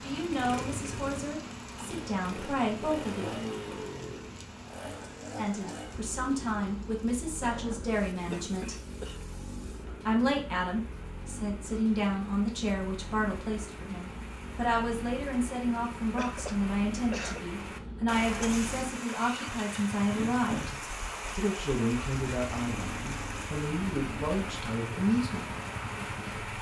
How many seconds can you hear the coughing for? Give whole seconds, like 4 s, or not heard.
3 s.